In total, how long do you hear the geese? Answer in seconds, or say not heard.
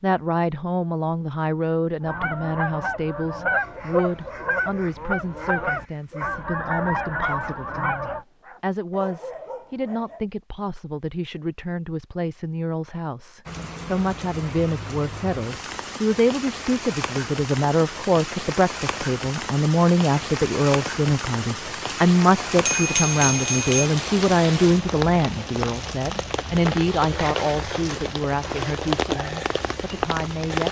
6 s.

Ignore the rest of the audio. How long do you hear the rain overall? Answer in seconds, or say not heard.
17 s.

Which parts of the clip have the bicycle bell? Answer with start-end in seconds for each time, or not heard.
22.4-23.9.